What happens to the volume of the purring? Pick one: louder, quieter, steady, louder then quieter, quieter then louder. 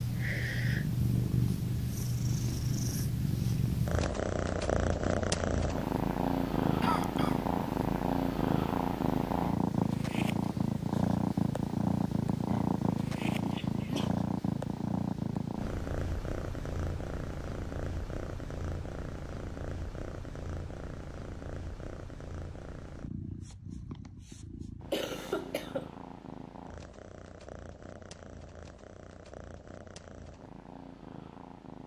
quieter.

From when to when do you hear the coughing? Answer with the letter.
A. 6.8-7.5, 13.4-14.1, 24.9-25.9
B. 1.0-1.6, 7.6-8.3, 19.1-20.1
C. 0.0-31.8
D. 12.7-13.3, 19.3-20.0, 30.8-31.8
A.